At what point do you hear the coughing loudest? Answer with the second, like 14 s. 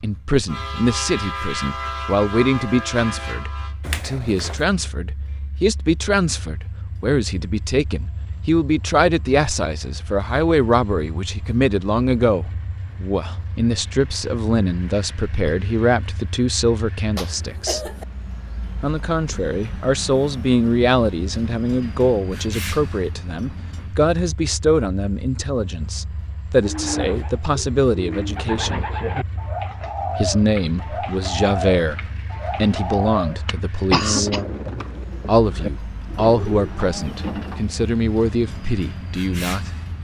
34 s.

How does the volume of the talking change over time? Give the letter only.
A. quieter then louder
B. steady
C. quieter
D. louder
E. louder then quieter
B.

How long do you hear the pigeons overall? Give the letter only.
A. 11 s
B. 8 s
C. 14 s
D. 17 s
A.